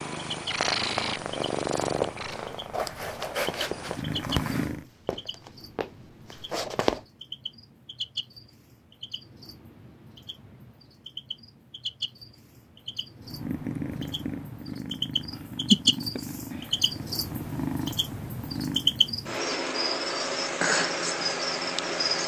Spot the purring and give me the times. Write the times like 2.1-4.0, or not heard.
0.0-4.8, 13.2-19.0.